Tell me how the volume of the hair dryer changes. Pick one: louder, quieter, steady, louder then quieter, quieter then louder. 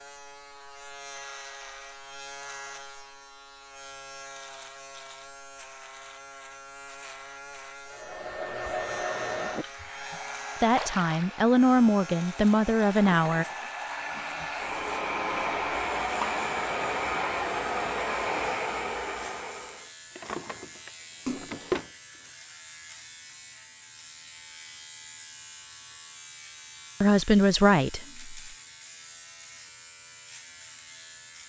quieter then louder.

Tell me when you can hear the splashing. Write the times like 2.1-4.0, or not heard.
10.7-11.4, 21.2-21.8.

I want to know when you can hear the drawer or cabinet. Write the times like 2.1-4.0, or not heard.
13.1-13.7, 20.1-21.9.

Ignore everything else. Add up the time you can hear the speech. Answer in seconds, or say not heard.
4 s.